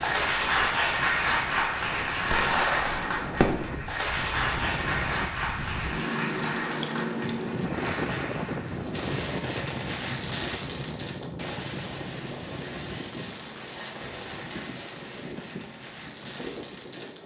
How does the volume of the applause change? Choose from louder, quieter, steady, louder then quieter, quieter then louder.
quieter.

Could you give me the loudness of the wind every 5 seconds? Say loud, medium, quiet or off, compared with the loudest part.
medium, loud, medium, medium.